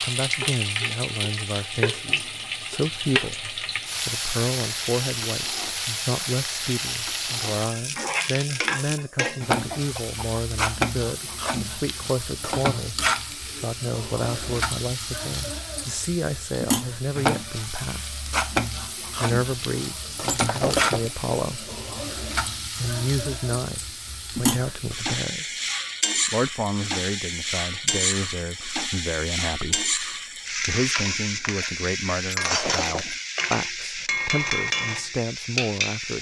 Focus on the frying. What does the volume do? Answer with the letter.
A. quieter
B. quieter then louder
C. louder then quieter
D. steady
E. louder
D.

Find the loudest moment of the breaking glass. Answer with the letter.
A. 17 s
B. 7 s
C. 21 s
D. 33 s
C.